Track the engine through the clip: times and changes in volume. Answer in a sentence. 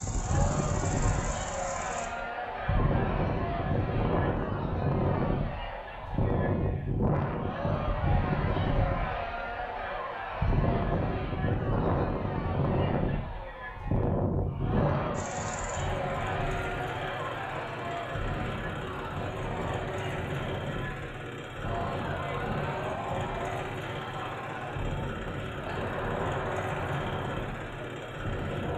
The engine can be heard briefly from 0.0 to 2.1 s; and from 15.1 to 28.7 s, at a steady volume.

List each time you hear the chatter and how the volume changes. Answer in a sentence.
You can hear the chatter from 0.0 to 28.7 s, at a steady volume.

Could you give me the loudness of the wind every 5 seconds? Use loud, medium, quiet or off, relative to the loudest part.
loud, loud, loud, medium, medium, medium.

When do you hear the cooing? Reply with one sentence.
The cooing can't be heard in this clip.